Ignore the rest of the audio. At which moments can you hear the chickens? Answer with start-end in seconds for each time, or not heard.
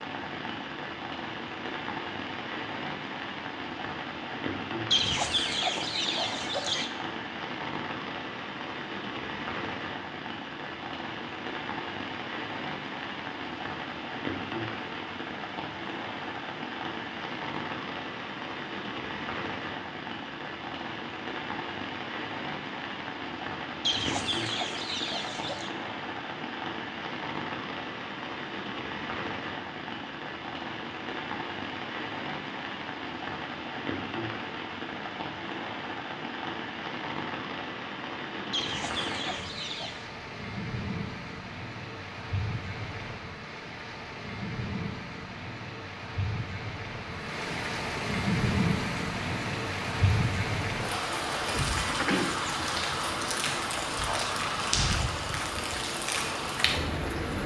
4.9-6.9, 23.8-25.7, 38.5-40.0.